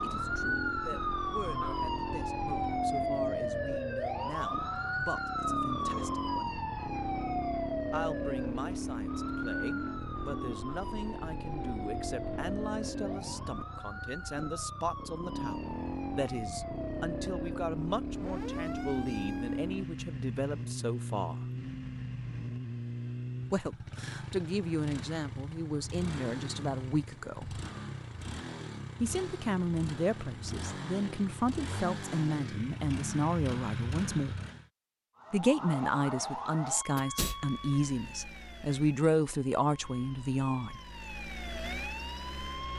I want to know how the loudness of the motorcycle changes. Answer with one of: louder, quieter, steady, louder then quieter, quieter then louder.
steady.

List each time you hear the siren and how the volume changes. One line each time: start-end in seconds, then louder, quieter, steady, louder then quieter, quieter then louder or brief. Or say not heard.
0.0-19.7 quieter
35.1-42.7 quieter then louder.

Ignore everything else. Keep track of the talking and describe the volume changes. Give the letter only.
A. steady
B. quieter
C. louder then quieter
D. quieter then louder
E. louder
E.